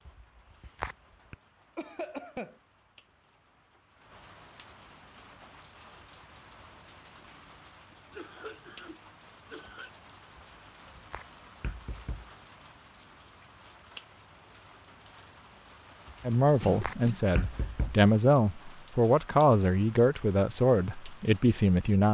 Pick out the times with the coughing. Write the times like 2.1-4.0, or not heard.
1.8-2.5, 8.1-9.9, 16.6-17.4.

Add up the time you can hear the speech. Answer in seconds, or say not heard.
6 s.